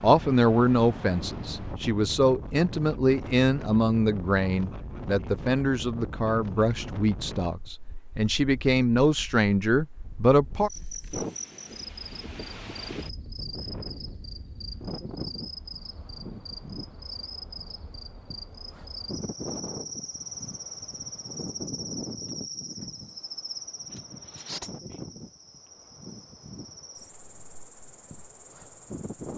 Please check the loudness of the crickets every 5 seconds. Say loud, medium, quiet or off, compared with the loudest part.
off, off, loud, loud, loud, medium.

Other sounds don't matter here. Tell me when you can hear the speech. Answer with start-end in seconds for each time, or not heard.
0.0-10.7.